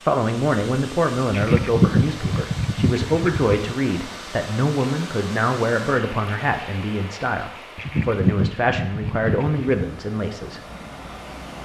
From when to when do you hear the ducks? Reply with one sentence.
You can hear the ducks from 1.3 to 3.8 s and from 7.8 to 9.8 s.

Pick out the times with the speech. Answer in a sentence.
The speech can be heard from 0.0 to 10.6 s.